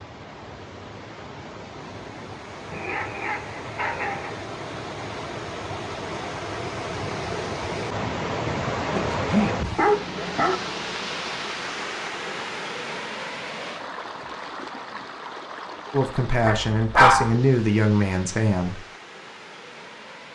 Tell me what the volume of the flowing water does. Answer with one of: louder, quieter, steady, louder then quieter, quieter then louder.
louder then quieter.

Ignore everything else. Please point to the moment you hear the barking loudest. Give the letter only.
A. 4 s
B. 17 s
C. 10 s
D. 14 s
B.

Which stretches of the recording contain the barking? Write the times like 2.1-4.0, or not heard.
2.7-4.3, 8.9-10.6, 16.4-17.4.